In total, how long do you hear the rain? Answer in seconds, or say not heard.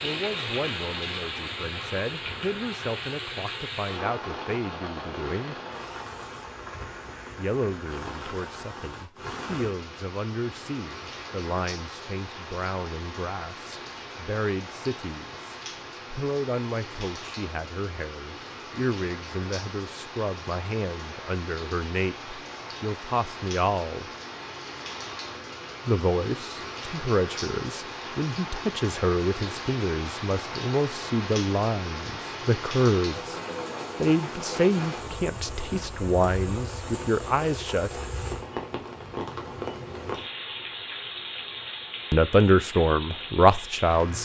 44 s.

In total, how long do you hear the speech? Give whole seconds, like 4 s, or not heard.
36 s.